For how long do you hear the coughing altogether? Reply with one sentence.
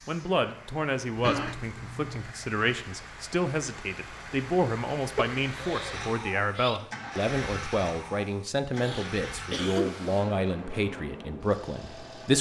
You can hear the coughing for 4 seconds altogether.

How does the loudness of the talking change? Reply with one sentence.
The volume of the talking stays about the same.